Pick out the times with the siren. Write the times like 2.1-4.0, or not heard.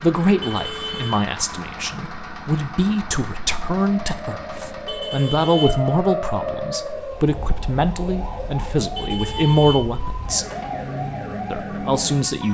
0.0-12.4.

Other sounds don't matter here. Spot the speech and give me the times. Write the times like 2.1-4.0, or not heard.
0.0-10.4, 11.5-12.4.